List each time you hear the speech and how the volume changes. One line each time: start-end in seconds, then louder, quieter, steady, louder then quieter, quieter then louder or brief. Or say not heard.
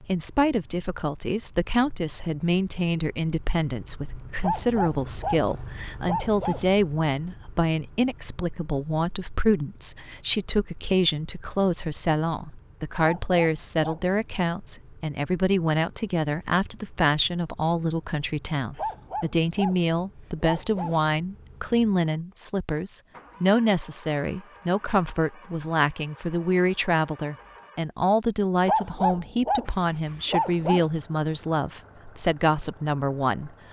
0.0-33.6 steady.